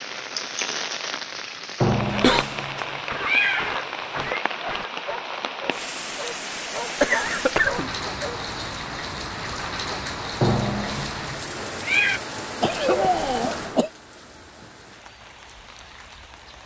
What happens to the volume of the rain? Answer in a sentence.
The volume of the rain goes down.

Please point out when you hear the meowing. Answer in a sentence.
You can hear the meowing from 1.8 to 4.4 s and from 10.4 to 12.2 s.